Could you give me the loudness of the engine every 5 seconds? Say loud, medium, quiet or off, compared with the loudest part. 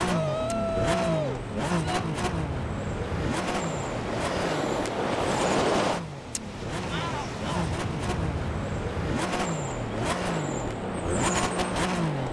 loud, medium, loud.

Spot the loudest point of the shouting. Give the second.
1 s.